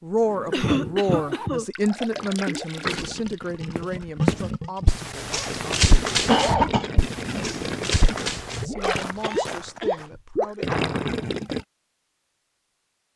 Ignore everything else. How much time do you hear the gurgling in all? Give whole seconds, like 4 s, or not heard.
10 s.